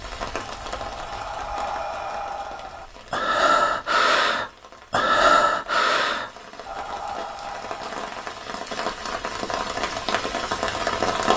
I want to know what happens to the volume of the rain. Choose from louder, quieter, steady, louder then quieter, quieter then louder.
quieter then louder.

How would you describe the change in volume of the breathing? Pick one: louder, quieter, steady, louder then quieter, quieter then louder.
louder then quieter.